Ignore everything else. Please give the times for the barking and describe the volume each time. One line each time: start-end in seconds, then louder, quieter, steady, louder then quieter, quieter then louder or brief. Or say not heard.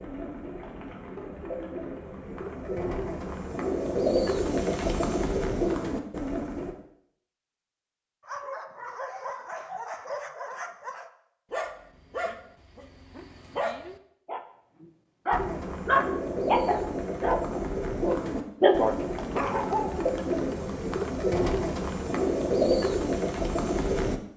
8.2-20.0 louder.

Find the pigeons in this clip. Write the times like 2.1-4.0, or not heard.
0.0-6.8, 15.3-24.2.